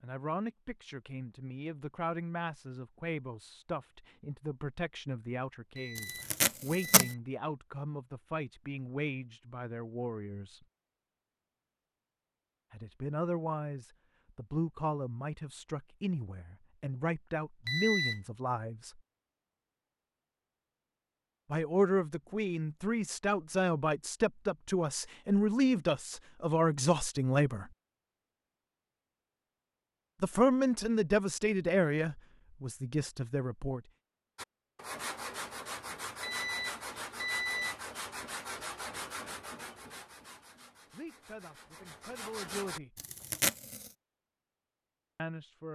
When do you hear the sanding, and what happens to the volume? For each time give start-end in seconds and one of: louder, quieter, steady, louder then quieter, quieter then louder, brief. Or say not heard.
34.4-42.8 quieter.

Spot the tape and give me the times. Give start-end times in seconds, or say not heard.
6.0-7.1, 43.0-43.9.